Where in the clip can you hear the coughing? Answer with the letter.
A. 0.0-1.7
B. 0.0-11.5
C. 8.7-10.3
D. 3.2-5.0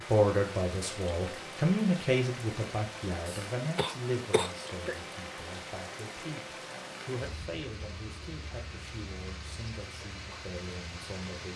D.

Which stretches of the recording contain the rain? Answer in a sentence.
The rain can be heard from 0.0 to 11.5 s.